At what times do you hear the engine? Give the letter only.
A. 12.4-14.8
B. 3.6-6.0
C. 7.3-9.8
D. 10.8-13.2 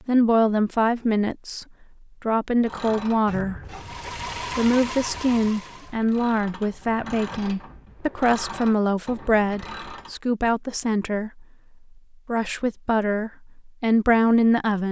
B.